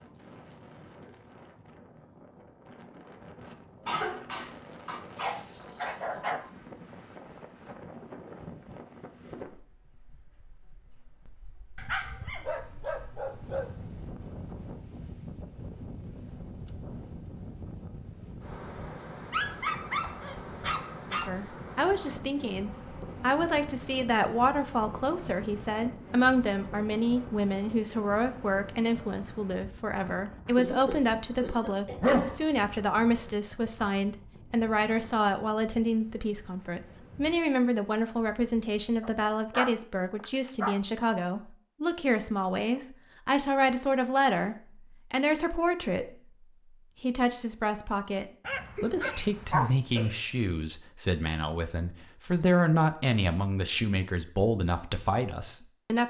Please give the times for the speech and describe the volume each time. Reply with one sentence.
You can hear the speech from 21.1 to 56.0 s, at a steady volume.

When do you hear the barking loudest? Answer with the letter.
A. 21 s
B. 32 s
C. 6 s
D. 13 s
B.